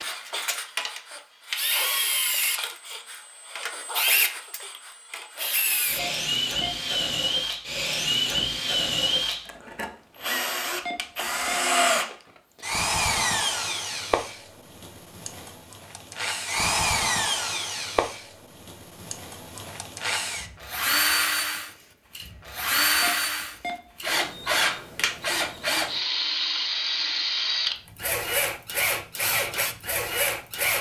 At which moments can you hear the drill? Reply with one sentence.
You can hear the drill from 0.0 to 30.7 s.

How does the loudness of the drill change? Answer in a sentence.
The loudness of the drill stays about the same.